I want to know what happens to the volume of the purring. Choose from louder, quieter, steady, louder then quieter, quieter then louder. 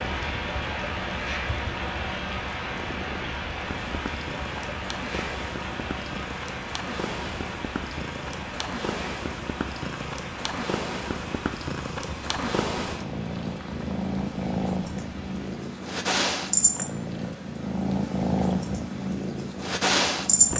louder.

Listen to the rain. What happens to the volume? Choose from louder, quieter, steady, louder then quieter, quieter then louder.
quieter.